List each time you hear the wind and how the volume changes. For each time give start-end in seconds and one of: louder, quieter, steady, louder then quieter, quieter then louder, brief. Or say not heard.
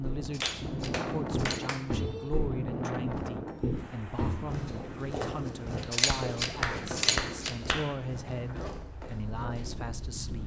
0.0-10.4 quieter.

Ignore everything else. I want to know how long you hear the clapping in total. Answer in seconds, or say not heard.
4 s.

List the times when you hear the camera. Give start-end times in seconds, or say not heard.
0.2-1.6, 5.8-7.5.